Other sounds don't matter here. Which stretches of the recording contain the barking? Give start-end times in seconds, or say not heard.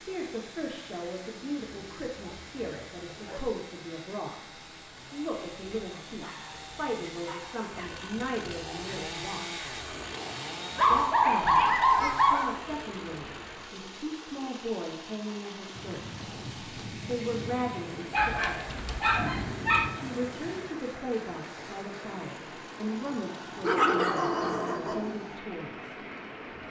1.6-3.5, 5.8-8.1, 10.8-12.6, 18.1-19.9, 23.6-25.1.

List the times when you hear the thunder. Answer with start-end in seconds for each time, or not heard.
15.8-20.7.